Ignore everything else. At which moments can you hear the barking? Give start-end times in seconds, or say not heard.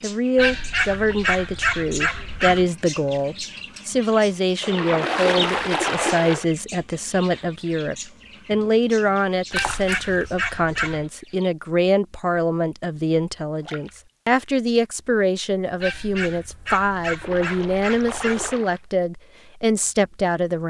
0.3-2.6, 9.5-11.1, 15.8-18.6.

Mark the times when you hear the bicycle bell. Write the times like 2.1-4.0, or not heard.
not heard.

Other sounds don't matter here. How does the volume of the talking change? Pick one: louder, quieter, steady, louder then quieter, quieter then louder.
steady.